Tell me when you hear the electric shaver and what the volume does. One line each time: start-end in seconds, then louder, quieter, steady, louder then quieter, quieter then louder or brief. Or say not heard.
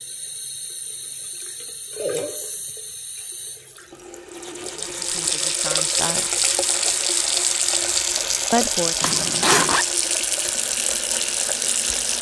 not heard.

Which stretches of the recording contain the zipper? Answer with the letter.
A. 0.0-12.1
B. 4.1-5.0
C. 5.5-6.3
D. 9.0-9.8
D.